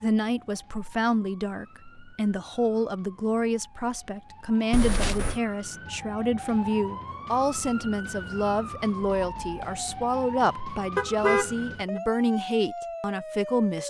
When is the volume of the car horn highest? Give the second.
11 s.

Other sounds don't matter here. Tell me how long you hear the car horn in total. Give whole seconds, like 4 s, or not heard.
2 s.